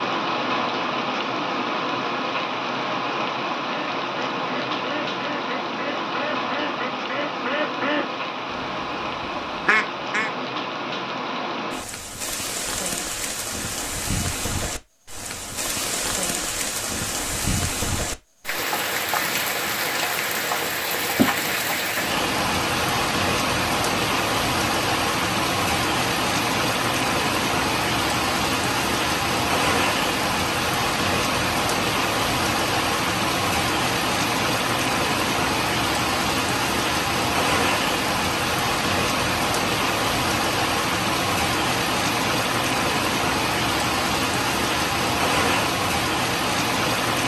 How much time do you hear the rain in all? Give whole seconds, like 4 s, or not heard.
47 s.